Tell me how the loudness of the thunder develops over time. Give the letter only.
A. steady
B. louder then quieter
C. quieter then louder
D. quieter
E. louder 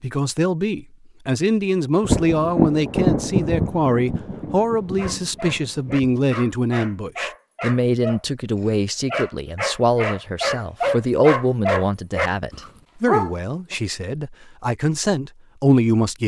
D.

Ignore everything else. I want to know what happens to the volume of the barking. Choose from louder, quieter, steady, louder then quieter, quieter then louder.
louder.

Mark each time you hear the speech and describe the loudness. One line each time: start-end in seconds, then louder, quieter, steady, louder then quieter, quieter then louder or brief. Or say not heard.
0.0-16.2 steady.